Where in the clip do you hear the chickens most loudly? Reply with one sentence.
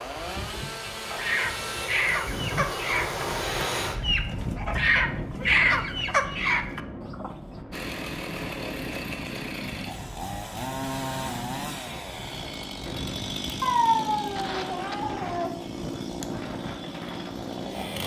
The volume of the chickens peaks at 6 seconds.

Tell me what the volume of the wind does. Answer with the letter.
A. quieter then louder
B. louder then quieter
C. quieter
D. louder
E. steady
C.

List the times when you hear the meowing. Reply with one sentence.
You can hear the meowing from 13.6 to 15.5 s.